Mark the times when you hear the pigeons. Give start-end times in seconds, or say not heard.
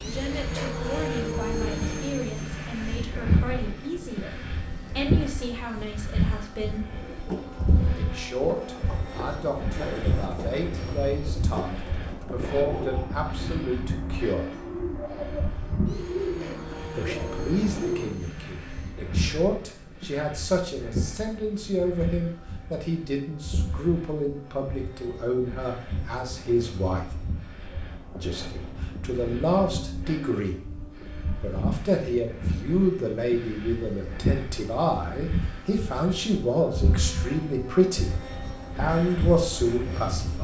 6.9-18.1.